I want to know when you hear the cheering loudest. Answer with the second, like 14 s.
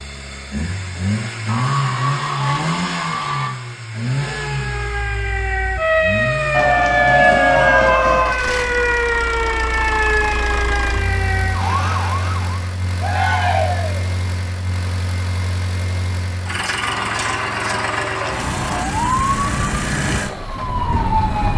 7 s.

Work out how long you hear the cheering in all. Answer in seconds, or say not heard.
7 s.